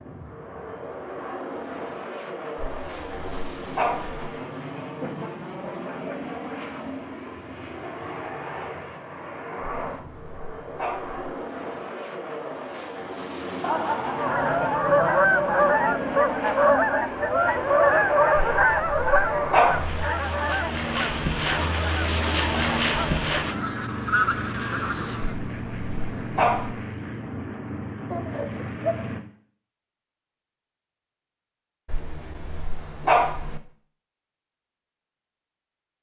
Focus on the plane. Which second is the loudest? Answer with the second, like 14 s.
23 s.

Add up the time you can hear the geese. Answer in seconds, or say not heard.
11 s.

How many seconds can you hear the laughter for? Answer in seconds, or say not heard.
3 s.